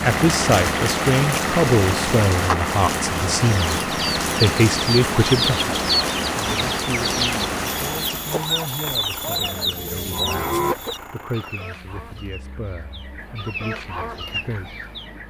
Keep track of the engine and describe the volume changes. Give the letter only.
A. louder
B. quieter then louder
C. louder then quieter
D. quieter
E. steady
D.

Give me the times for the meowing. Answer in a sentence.
The meowing can't be heard in this clip.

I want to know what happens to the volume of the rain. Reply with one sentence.
The volume of the rain stays about the same.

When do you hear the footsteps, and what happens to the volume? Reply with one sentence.
You can't hear the footsteps here.